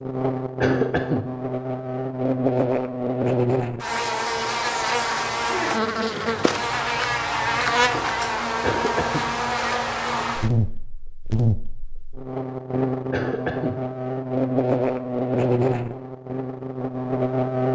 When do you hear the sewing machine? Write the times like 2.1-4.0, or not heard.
not heard.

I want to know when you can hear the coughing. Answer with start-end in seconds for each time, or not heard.
0.6-1.2, 8.6-9.2, 13.1-13.8.